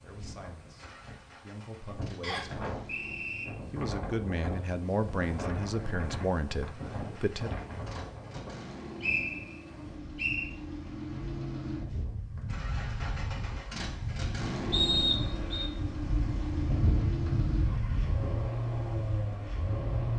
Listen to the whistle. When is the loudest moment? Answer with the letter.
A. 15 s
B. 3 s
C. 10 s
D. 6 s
A.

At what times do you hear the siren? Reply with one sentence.
You can't hear the siren here.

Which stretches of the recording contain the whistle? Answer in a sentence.
You can hear the whistle from 2.2 to 3.5 s, from 9.0 to 10.5 s and from 14.7 to 15.7 s.